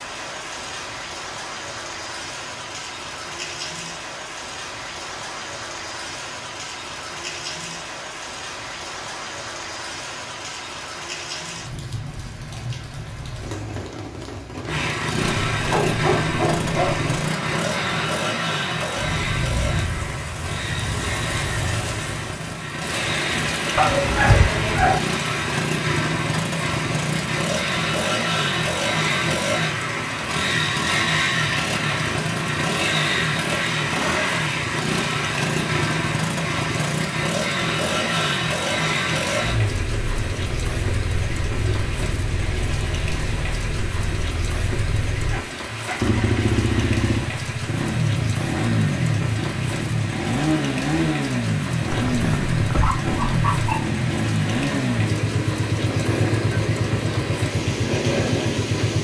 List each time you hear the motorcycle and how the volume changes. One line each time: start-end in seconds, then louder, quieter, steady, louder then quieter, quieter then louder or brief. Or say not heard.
14.7-58.9 steady.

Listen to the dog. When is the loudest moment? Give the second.
24 s.